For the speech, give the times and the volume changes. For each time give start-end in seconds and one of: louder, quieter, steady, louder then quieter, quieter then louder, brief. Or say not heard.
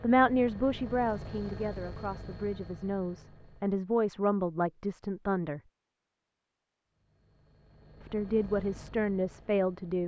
0.0-5.6 quieter then louder
8.1-10.0 brief.